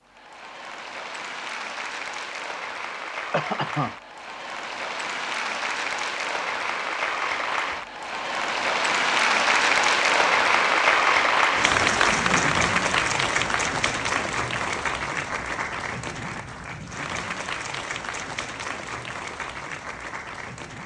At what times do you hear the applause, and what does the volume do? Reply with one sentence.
The applause can be heard from 0.0 to 20.8 s, getting louder then quieter.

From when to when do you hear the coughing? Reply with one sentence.
You can hear the coughing from 3.3 to 4.0 s.